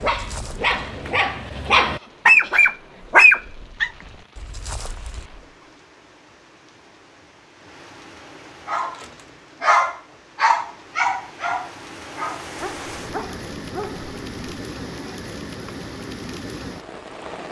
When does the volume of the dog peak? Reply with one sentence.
The loudest moment of the dog is at 3 seconds.